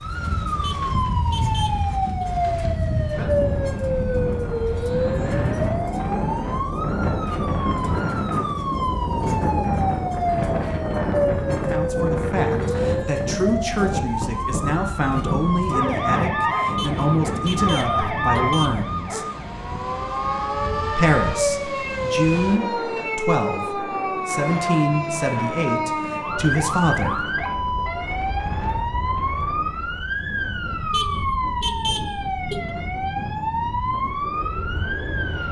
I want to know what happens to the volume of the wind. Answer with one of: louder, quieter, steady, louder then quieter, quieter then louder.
quieter.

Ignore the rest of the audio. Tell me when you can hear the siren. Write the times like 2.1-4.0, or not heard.
0.0-35.4.